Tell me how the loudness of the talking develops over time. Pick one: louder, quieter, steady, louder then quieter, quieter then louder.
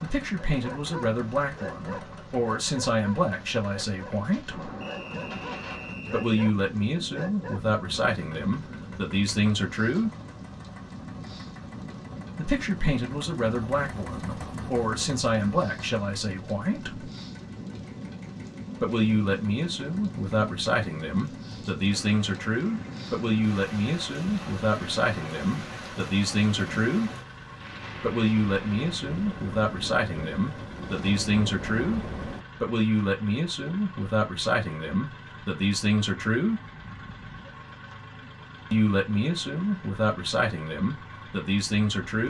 steady.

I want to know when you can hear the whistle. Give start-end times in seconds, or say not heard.
4.8-6.3.